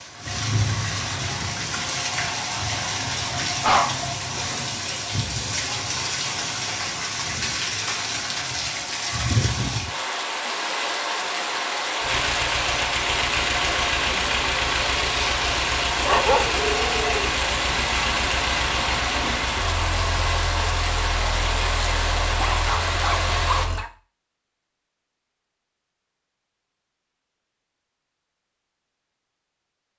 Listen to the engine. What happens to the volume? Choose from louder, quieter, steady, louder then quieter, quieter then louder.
quieter.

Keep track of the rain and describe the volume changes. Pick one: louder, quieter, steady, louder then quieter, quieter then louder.
steady.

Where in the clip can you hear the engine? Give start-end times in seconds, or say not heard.
12.0-23.9.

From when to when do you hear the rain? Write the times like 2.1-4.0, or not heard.
0.0-23.6.